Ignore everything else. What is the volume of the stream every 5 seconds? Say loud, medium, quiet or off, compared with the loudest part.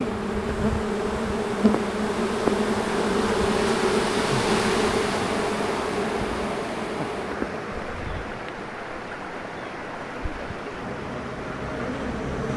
loud, loud, medium.